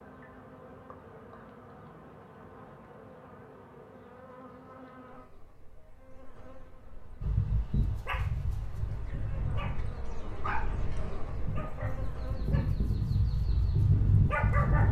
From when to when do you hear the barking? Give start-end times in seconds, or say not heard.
7.2-14.8.